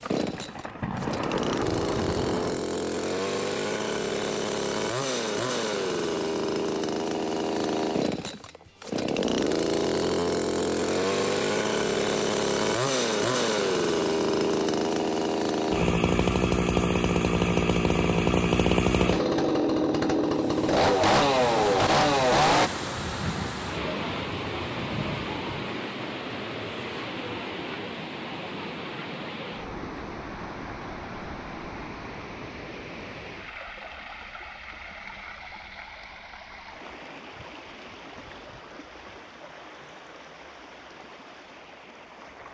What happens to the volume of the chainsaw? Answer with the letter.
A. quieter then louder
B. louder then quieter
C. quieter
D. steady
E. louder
E.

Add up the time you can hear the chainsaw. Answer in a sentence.
The chainsaw can be heard for 23 seconds in total.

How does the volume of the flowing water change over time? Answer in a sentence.
The loudness of the flowing water goes down.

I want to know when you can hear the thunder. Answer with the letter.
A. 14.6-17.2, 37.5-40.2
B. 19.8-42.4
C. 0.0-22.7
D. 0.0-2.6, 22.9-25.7
D.